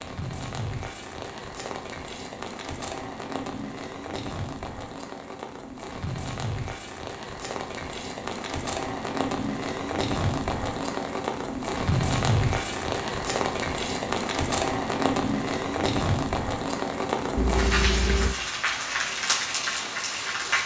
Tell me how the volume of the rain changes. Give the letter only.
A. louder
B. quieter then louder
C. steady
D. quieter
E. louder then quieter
A.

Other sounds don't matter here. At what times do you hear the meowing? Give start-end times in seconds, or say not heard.
17.4-18.4.